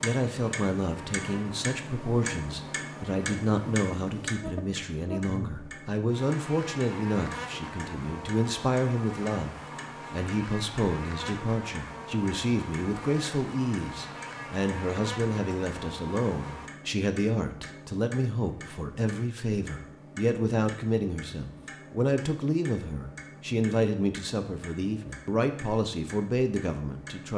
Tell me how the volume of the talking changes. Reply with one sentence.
The volume of the talking stays about the same.